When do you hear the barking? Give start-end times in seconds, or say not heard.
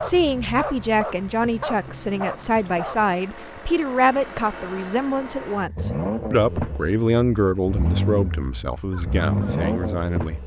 0.0-3.1.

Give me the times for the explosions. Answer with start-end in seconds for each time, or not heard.
not heard.